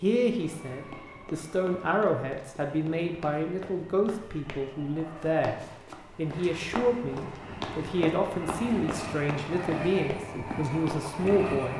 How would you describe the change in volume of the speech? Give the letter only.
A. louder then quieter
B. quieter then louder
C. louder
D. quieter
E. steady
E.